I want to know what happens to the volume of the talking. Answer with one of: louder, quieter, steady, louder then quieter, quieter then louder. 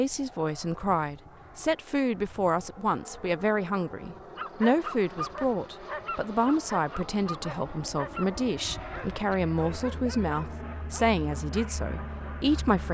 steady.